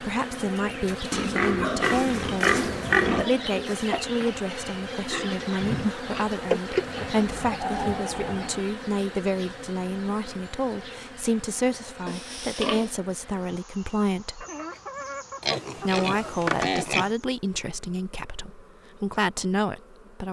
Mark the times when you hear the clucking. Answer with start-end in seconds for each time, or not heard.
2.6-4.2, 7.0-8.7, 14.4-16.3.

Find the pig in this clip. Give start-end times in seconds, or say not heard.
1.1-3.3, 5.1-7.0, 12.1-12.9, 15.4-17.1.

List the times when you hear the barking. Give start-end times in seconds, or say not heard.
not heard.